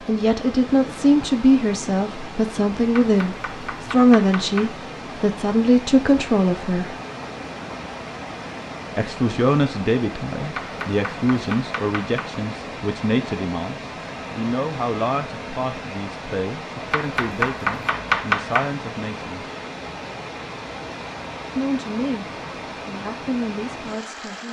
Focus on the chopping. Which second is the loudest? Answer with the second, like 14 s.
18 s.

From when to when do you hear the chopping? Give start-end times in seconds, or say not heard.
2.9-4.8, 10.6-12.3, 16.9-18.8.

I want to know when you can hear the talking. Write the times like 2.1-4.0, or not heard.
0.1-7.0, 8.9-19.4, 21.6-22.2, 22.9-24.4.